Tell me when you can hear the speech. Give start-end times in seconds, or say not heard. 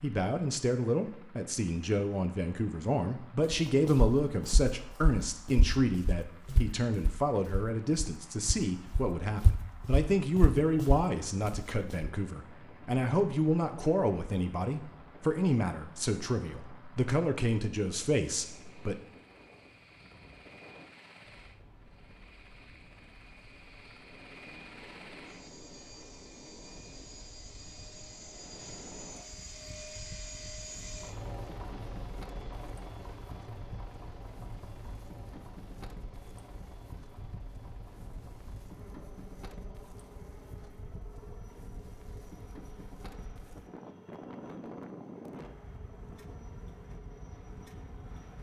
0.0-18.9.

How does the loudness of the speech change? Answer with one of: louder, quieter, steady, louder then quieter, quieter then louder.
steady.